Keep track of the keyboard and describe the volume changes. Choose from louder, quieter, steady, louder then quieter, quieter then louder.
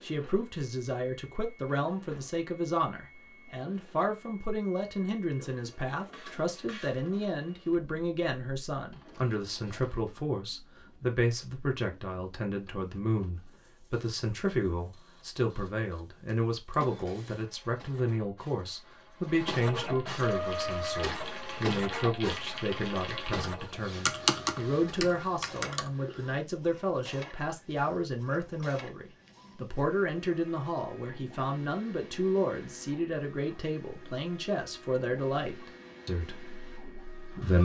louder then quieter.